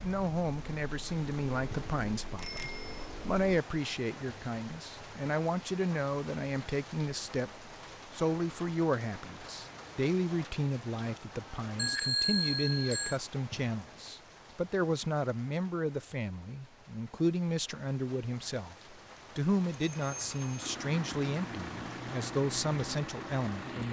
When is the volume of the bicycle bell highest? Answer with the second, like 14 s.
12 s.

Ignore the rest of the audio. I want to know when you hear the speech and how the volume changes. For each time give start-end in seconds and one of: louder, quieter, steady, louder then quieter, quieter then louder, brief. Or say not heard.
0.0-23.8 steady.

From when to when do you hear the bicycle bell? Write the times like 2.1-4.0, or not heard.
2.4-3.0, 11.8-13.2, 19.7-20.5.